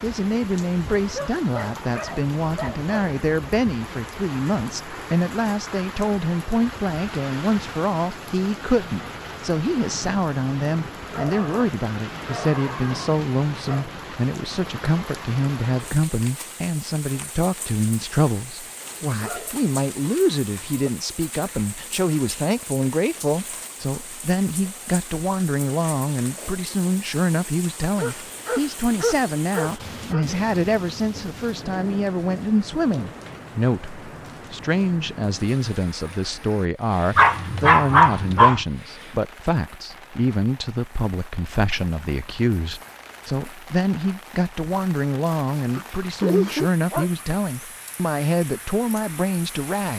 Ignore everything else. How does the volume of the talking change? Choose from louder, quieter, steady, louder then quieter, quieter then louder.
steady.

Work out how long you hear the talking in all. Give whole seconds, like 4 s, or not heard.
50 s.